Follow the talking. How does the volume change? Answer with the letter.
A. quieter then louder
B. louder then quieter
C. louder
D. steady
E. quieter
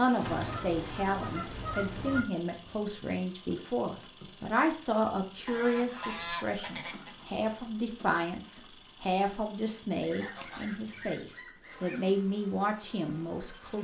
D.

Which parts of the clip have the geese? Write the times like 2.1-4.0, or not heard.
0.2-2.2, 5.5-7.2, 10.0-12.0.